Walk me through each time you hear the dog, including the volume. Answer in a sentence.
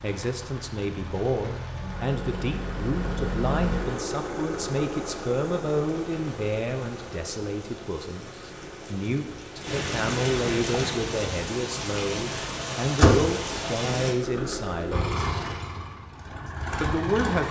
You can't hear the dog here.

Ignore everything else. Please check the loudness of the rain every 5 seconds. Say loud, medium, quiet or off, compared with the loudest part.
quiet, medium, loud, off.